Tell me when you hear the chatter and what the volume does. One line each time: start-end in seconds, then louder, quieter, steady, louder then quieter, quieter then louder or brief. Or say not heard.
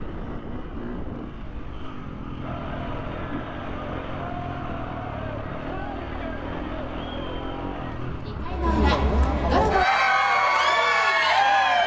2.4-11.8 louder.